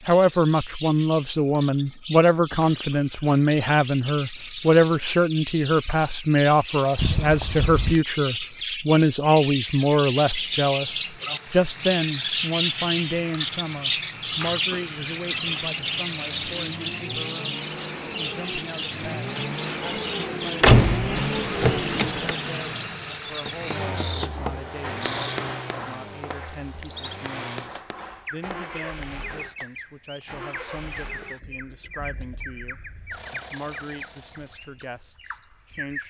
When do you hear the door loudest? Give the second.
21 s.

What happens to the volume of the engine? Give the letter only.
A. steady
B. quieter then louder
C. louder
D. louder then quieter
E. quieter
D.